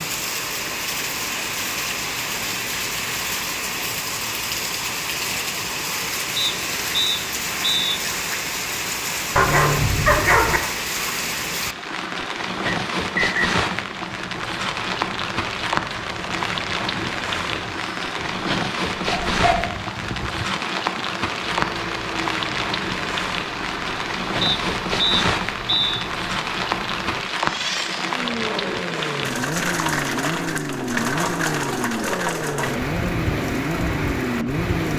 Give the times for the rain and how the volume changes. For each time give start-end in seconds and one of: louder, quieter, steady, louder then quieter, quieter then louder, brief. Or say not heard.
0.0-34.9 steady.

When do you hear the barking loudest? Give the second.
10 s.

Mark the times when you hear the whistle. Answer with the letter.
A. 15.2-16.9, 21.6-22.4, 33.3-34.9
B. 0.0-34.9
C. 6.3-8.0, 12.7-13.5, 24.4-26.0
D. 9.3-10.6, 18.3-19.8
C.